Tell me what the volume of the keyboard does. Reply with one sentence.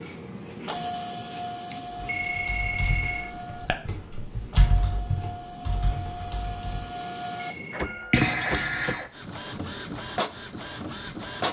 The volume of the keyboard goes up, then down.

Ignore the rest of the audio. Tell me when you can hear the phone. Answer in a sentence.
The phone can be heard from 2.0 to 3.4 s and from 7.4 to 8.1 s.